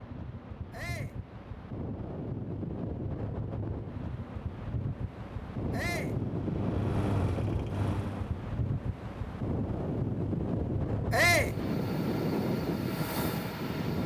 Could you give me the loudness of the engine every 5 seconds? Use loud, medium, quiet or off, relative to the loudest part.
off, loud, loud.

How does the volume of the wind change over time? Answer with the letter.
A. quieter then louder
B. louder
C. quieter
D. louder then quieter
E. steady
B.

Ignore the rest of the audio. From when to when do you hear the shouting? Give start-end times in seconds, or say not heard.
0.7-1.2, 5.7-6.2, 11.1-11.6.